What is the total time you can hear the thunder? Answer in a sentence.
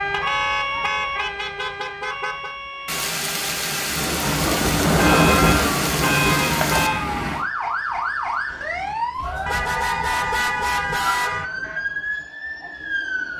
The thunder can be heard for 4 seconds in total.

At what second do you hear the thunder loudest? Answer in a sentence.
The loudest moment of the thunder is at 5 seconds.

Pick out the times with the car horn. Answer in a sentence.
You can hear the car horn from 0.1 to 2.5 s, from 5.0 to 7.0 s and from 9.4 to 11.4 s.